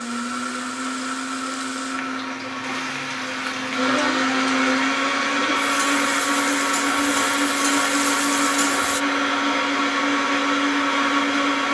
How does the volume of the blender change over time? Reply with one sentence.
The volume of the blender goes up.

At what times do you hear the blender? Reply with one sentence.
You can hear the blender from 0.0 to 11.7 s.